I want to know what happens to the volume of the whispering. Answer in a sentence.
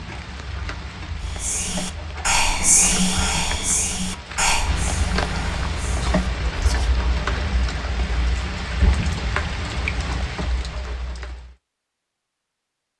The volume of the whispering goes down.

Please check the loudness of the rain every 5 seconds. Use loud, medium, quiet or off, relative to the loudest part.
medium, loud, medium.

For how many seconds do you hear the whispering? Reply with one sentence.
The whispering can be heard for 6 seconds in total.